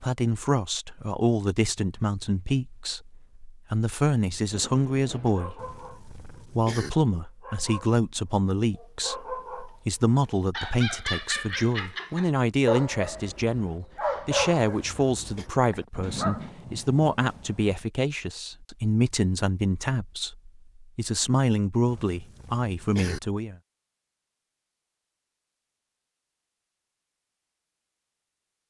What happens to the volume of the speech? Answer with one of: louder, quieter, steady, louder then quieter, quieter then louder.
steady.